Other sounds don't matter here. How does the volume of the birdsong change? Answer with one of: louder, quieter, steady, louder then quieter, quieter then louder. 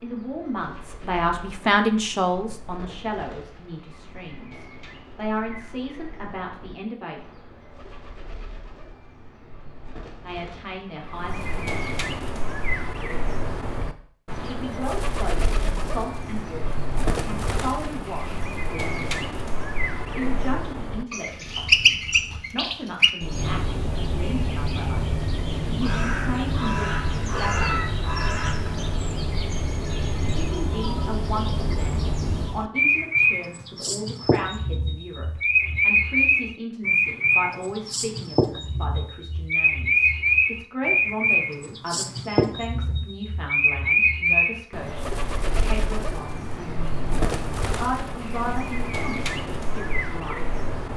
louder.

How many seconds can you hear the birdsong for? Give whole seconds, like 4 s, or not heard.
51 s.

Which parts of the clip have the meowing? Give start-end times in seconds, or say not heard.
27.3-27.9.